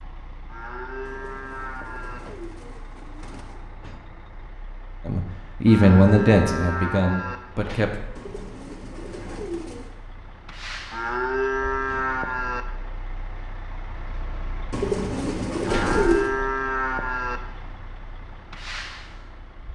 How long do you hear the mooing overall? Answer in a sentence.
The mooing can be heard for 7 seconds in total.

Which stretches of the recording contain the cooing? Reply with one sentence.
The cooing can be heard from 1.1 to 3.6 s, from 8.2 to 9.9 s and from 14.7 to 16.3 s.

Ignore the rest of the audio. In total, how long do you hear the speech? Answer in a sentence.
The speech can be heard for 3 seconds in total.